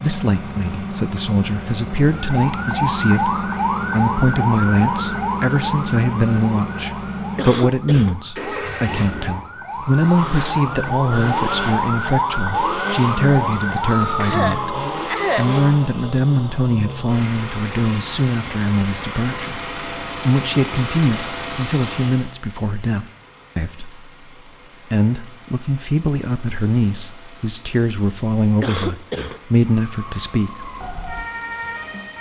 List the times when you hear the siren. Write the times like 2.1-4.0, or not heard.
2.1-15.1, 29.8-32.1.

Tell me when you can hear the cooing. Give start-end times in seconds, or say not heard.
not heard.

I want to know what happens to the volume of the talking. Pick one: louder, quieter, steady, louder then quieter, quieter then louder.
steady.